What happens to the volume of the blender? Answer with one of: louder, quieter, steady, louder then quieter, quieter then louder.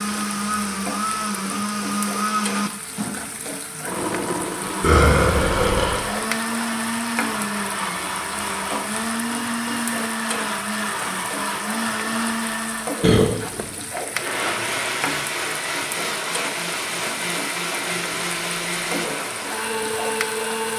steady.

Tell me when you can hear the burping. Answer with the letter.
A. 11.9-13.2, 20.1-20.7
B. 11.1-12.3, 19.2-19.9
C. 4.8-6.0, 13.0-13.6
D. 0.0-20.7
C.